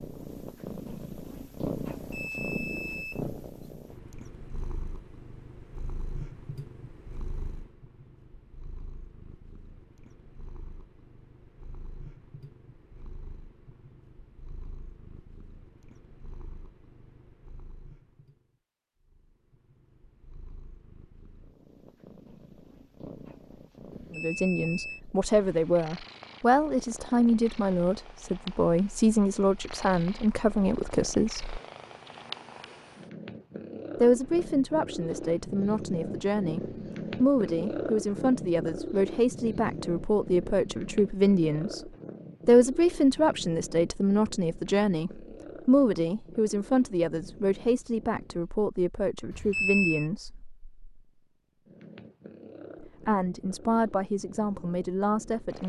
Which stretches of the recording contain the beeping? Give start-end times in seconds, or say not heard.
2.0-3.2, 23.9-25.0, 49.3-50.1.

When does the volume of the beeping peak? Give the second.
50 s.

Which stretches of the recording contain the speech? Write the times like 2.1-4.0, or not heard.
24.1-31.5, 34.0-50.5, 52.8-55.6.